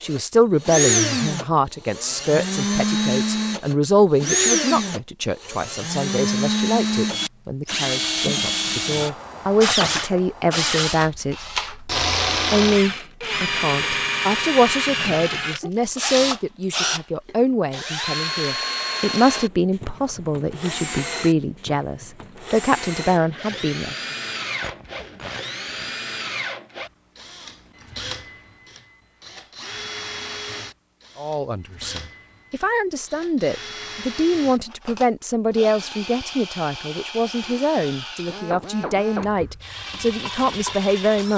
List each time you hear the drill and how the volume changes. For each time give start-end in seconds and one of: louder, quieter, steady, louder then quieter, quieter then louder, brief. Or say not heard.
0.1-41.3 quieter.